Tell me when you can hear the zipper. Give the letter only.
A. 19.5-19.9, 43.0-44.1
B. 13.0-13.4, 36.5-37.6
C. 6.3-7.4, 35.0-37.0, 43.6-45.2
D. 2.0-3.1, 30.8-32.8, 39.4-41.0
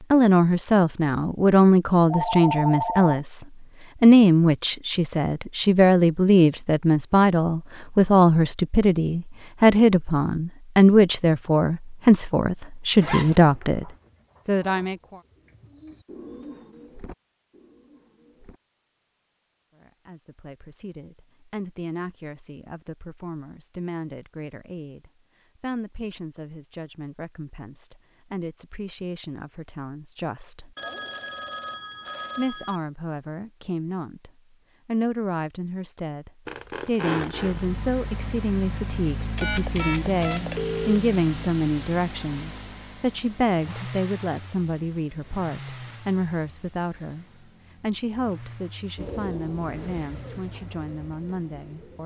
B.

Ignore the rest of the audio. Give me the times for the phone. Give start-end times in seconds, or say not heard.
2.0-3.1, 30.8-32.8, 39.4-41.0.